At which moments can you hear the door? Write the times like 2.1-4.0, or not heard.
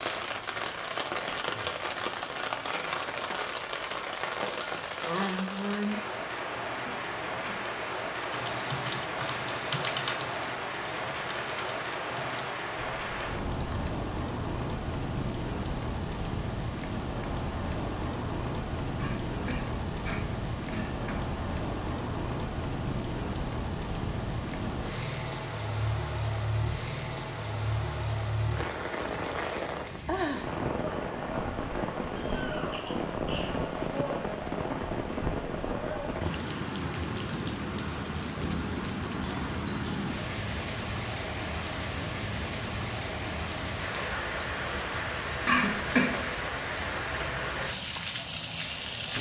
not heard.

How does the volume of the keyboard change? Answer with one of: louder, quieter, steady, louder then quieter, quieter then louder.
quieter.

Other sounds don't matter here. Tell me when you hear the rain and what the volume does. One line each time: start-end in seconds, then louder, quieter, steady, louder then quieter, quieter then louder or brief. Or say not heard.
0.0-49.1 steady.